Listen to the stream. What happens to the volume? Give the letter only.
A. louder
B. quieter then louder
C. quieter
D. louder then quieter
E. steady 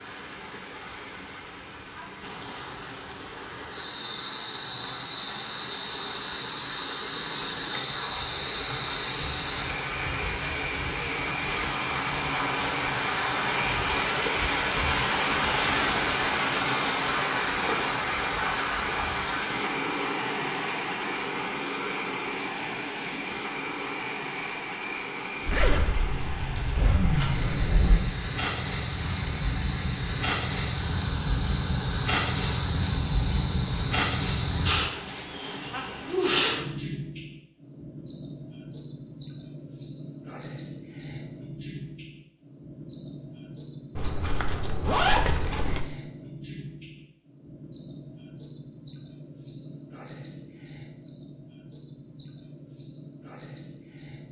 D.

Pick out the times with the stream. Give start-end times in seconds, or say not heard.
0.0-36.2.